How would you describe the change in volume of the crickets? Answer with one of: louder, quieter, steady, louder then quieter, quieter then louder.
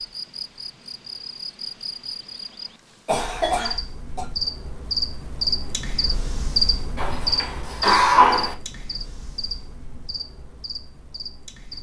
louder then quieter.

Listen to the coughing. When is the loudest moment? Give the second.
8 s.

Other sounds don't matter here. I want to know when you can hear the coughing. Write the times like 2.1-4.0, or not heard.
3.0-4.2, 7.0-8.6.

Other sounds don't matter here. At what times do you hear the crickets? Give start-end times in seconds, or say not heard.
0.0-11.7.